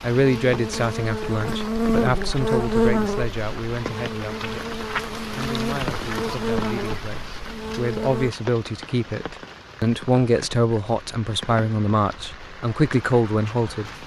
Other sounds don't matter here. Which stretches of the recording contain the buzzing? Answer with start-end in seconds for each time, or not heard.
0.1-8.3.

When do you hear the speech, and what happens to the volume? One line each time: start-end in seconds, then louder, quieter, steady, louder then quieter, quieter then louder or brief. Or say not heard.
0.0-13.9 quieter then louder.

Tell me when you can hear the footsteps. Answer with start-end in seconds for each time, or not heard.
not heard.